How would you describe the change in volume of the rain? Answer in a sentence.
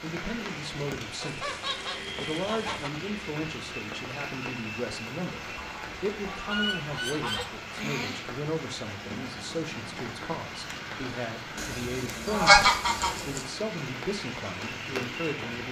The loudness of the rain stays about the same.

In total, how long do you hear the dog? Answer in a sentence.
The dog can't be heard in this clip.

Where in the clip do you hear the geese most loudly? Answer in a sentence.
The volume of the geese peaks at 13 seconds.